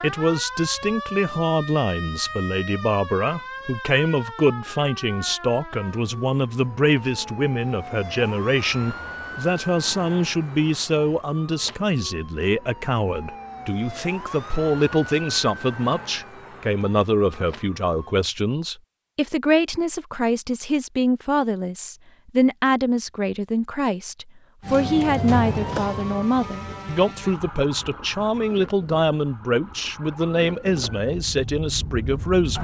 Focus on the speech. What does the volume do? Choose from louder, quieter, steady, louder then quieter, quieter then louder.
steady.